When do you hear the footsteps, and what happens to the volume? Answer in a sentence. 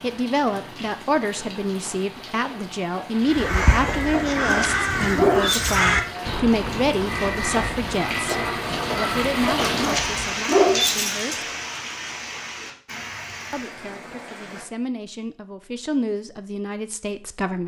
The footsteps can't be heard in this clip.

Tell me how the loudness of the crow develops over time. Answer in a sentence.
The volume of the crow goes down.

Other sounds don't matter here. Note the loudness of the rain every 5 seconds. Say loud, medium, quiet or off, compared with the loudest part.
medium, loud, loud, off.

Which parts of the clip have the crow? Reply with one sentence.
You can hear the crow from 3.2 to 10.9 s.